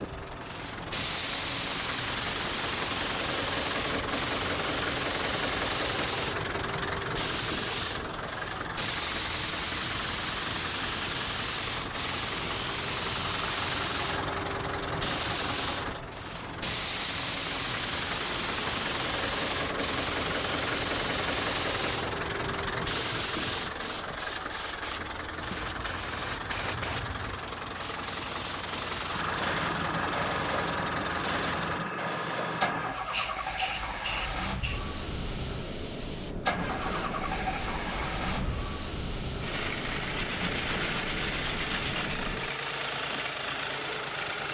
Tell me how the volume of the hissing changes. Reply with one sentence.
The loudness of the hissing stays about the same.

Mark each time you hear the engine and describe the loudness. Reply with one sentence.
You can hear the engine from 0.0 to 44.4 s, at a steady volume.